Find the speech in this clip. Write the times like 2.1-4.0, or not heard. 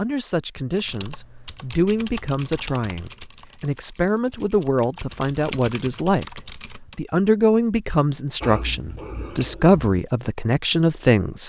0.0-11.4.